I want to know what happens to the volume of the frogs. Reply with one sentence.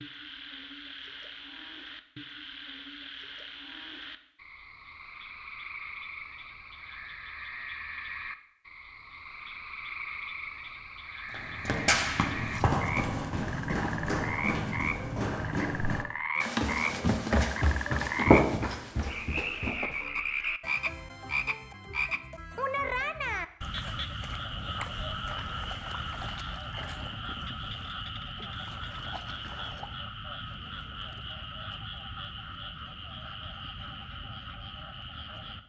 The loudness of the frogs goes up, then down.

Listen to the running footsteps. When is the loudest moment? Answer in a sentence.
The loudest moment of the running footsteps is at 18 seconds.